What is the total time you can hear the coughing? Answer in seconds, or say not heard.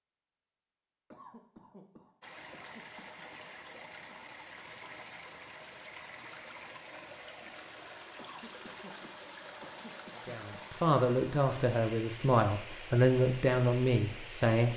5 s.